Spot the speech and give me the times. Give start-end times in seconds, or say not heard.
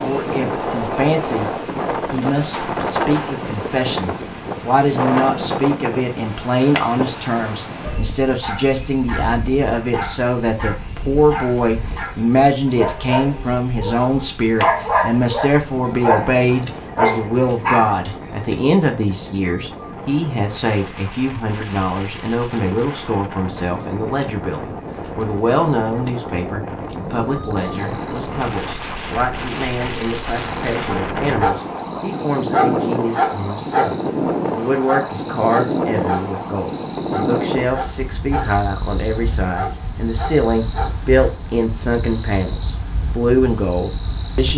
0.0-1.5, 2.1-44.5.